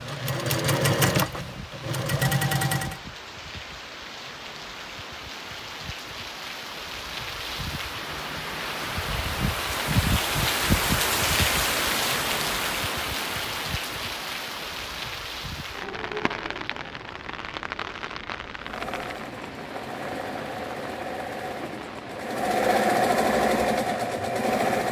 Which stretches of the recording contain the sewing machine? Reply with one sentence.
The sewing machine can be heard from 0.0 to 3.0 s and from 18.6 to 24.8 s.